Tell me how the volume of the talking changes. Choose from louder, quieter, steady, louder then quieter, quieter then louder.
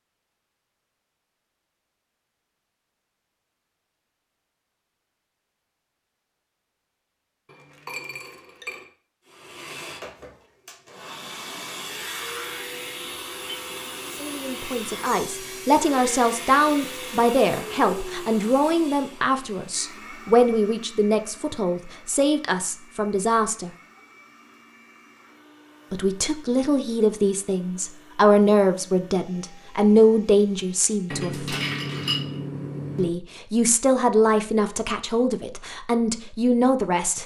steady.